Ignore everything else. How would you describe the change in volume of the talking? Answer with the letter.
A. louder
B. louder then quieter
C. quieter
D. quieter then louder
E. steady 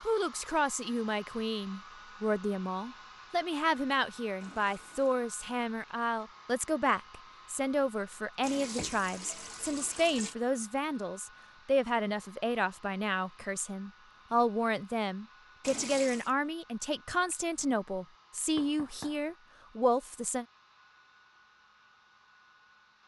E.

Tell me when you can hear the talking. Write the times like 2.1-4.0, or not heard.
0.0-20.4.